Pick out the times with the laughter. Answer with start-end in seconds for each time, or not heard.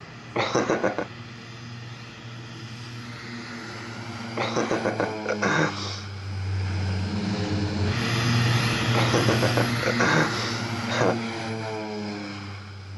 0.3-1.1, 4.3-6.0, 8.9-11.2.